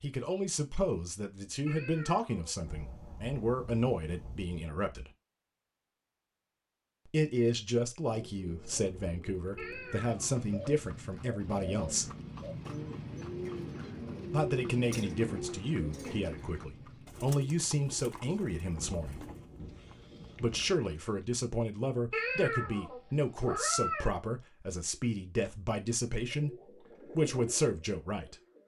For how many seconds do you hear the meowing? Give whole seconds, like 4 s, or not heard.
4 s.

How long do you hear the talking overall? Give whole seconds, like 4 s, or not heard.
23 s.